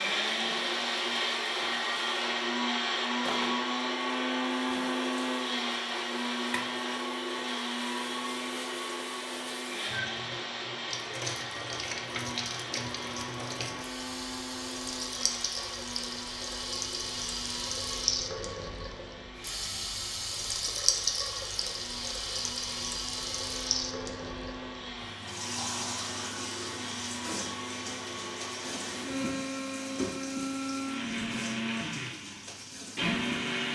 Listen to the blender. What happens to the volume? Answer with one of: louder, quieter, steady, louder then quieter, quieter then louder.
quieter then louder.